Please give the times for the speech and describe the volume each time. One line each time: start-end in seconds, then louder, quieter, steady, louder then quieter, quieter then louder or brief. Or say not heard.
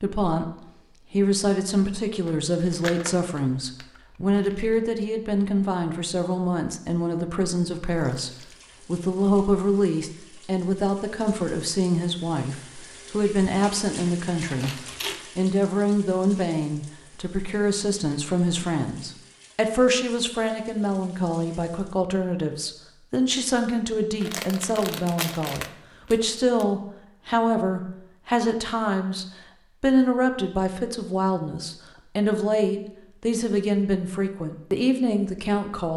0.0-35.9 steady.